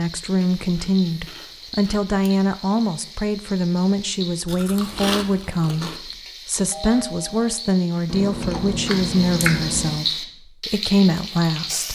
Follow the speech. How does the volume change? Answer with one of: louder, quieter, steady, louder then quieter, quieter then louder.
steady.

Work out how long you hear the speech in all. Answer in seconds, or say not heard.
12 s.